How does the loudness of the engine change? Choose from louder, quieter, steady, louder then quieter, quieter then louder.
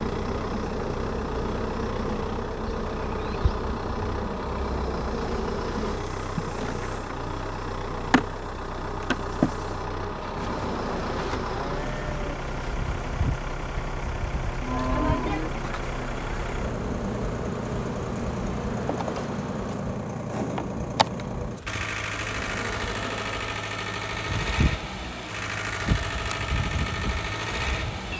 steady.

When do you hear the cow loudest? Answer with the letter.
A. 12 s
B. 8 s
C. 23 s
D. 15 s
D.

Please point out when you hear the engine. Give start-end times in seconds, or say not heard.
0.0-28.1.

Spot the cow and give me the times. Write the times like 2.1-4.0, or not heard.
10.3-12.3, 14.6-15.5.